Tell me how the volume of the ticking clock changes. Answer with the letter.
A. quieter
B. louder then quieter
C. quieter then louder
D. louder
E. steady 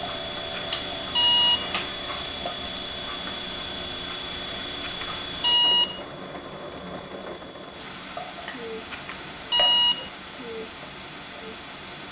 A.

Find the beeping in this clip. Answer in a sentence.
The beeping can be heard from 0.6 to 1.8 s, from 4.8 to 6.0 s and from 8.9 to 10.1 s.